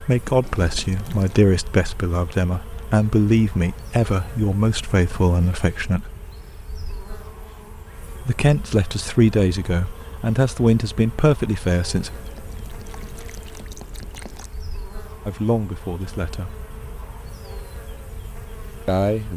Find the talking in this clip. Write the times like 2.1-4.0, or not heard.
0.0-6.1, 8.2-12.1, 15.2-16.6, 18.9-19.3.